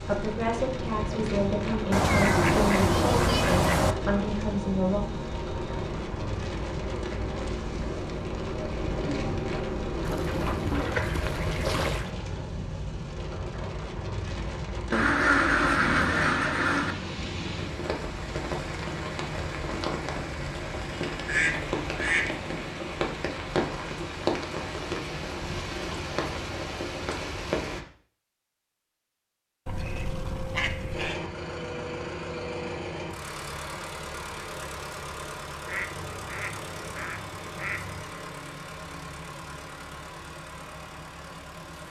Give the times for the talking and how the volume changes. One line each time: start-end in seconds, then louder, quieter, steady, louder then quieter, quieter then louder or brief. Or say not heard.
0.0-5.0 steady.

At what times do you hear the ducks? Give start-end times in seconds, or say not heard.
1.9-4.0, 10.1-12.1, 14.9-16.9, 21.2-22.4, 29.6-31.2, 35.6-38.1.